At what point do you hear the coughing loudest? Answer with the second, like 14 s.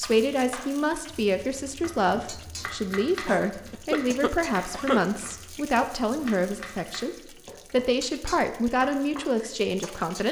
5 s.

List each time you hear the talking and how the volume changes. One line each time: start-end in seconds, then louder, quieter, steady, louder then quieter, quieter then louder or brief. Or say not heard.
0.0-10.2 steady.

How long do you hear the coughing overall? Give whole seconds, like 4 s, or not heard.
2 s.